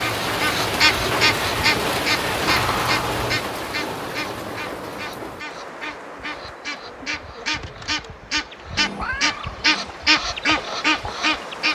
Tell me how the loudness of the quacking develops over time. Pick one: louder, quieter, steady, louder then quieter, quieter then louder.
quieter then louder.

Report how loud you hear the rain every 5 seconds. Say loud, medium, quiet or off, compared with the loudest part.
loud, quiet, medium.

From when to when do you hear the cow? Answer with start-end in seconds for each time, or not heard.
not heard.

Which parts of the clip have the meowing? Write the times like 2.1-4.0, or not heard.
2.5-3.4, 8.8-9.9.